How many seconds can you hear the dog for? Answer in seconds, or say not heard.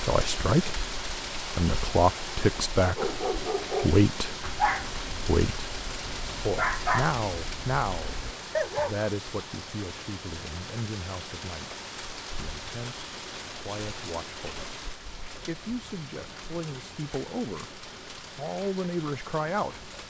6 s.